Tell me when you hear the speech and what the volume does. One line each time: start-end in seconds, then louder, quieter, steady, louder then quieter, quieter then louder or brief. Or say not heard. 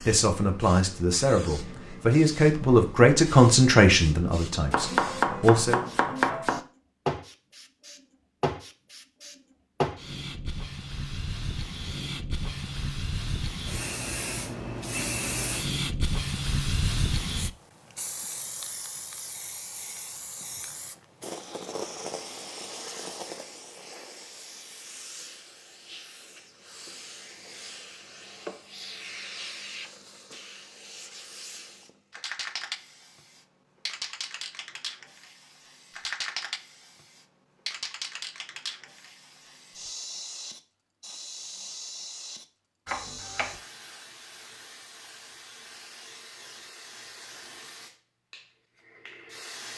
0.0-5.8 louder then quieter.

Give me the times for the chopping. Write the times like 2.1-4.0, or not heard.
4.7-6.6, 42.9-43.5.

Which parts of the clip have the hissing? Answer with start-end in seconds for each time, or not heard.
0.0-49.7.